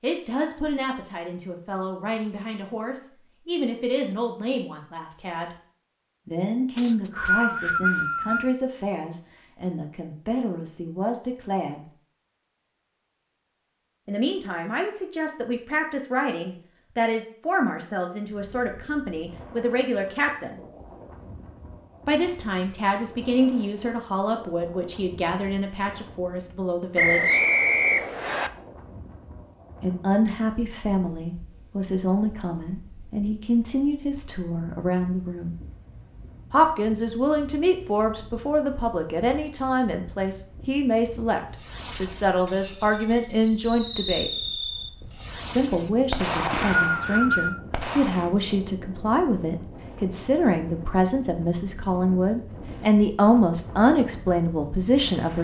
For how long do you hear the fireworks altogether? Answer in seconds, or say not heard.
7 s.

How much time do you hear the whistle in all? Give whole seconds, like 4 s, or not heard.
5 s.